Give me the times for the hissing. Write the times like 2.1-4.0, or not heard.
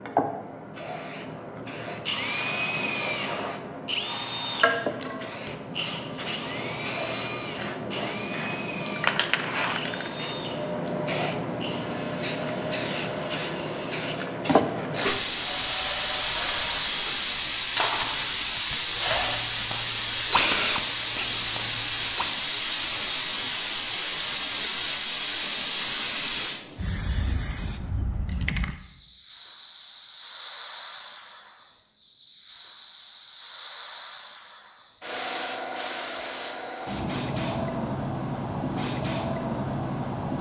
0.0-40.3.